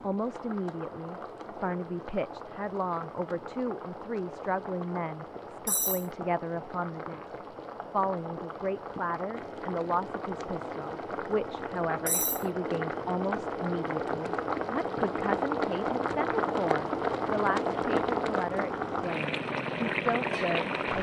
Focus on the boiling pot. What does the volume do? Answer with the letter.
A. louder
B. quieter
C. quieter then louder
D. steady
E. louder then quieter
A.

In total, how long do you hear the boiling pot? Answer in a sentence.
You can hear the boiling pot for 21 seconds altogether.